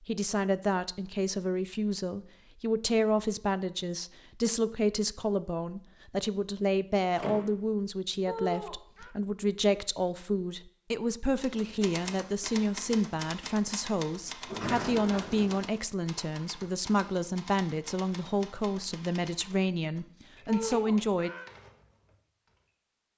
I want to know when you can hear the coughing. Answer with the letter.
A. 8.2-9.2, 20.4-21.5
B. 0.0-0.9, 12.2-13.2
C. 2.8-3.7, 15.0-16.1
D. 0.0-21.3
A.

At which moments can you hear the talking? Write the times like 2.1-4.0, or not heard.
0.0-21.3.